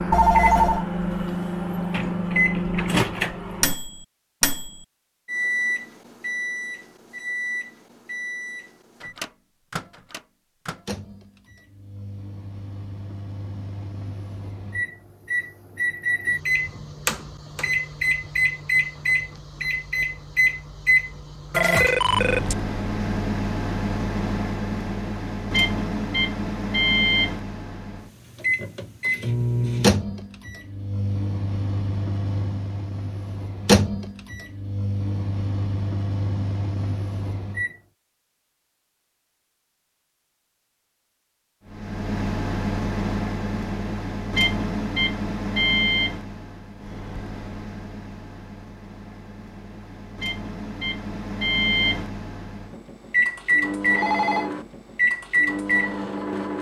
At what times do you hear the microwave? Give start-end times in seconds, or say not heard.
0.0-37.8, 41.7-56.5.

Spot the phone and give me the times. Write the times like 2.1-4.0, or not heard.
0.1-0.8, 21.5-22.6, 53.9-54.5.